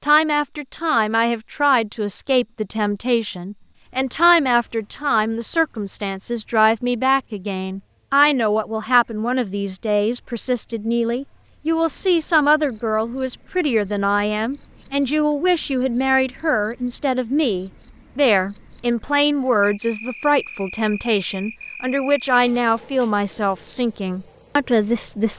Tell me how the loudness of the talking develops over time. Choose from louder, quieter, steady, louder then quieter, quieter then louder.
steady.